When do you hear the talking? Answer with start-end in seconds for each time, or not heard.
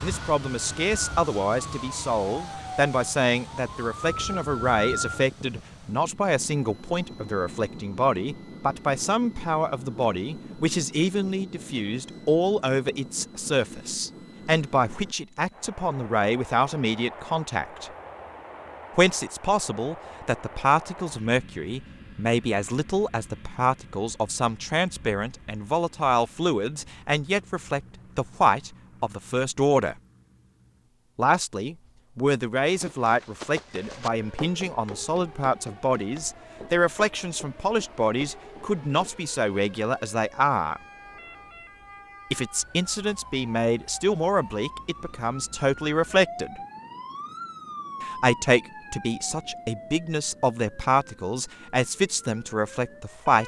0.0-17.9, 18.9-29.9, 31.1-40.8, 42.3-46.6, 48.0-53.4.